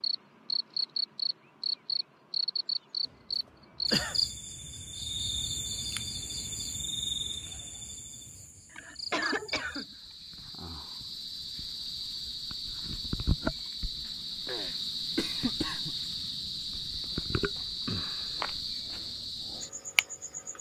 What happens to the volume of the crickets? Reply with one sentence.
The volume of the crickets goes down, then up.